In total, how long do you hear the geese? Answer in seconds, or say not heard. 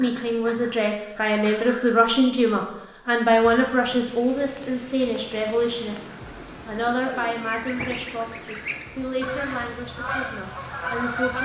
6 s.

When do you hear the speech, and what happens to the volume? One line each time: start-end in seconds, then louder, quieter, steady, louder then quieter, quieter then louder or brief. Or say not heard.
0.0-11.4 quieter.